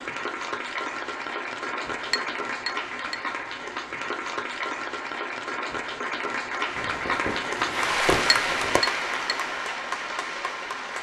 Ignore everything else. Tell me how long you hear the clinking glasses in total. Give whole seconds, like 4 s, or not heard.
2 s.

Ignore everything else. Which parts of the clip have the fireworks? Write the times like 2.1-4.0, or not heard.
6.8-8.8.